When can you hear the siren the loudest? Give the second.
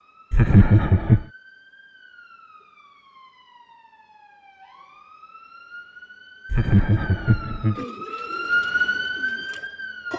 9 s.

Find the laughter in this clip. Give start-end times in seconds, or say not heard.
0.3-1.2, 6.5-7.8.